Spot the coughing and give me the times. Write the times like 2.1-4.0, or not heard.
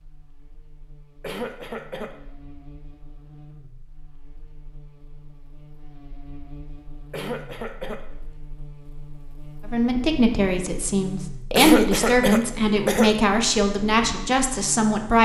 1.2-2.1, 7.1-8.1, 11.6-13.2.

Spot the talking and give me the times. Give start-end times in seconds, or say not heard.
9.7-15.1.